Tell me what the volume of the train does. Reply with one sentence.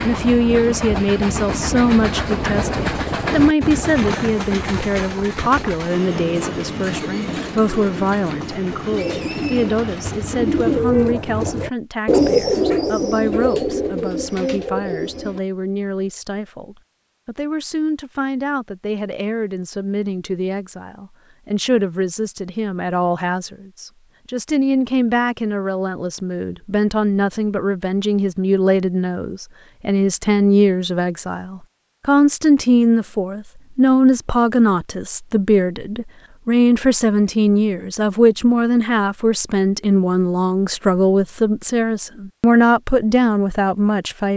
The volume of the train goes down.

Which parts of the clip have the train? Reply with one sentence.
The train can be heard from 0.0 to 10.8 s.